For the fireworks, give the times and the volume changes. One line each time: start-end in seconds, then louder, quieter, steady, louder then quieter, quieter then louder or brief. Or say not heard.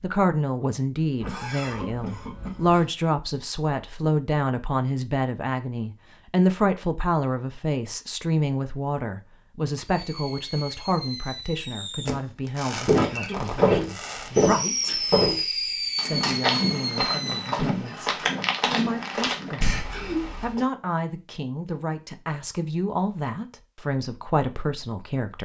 9.8-17.6 louder.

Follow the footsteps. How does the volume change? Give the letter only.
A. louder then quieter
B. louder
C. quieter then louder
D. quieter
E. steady
D.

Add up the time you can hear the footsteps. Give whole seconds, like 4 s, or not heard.
7 s.